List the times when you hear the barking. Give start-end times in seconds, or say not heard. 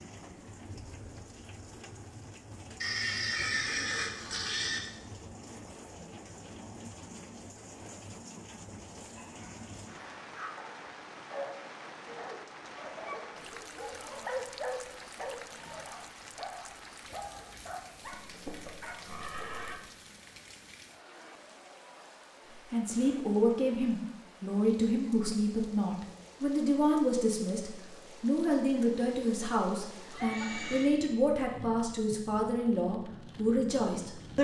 9.2-19.0.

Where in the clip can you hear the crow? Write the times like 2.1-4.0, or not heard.
not heard.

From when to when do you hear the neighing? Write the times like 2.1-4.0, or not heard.
2.8-4.8, 18.1-19.8, 30.1-30.9.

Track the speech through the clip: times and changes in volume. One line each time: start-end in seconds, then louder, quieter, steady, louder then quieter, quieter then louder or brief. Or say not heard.
22.7-34.3 steady.